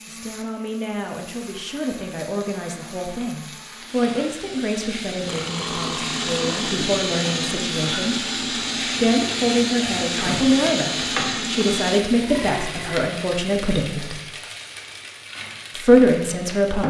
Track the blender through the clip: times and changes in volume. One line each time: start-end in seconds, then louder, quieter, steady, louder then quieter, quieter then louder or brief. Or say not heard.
0.0-12.0 louder.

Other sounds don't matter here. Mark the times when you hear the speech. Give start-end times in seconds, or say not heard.
0.1-8.4, 9.0-14.2, 15.8-16.8.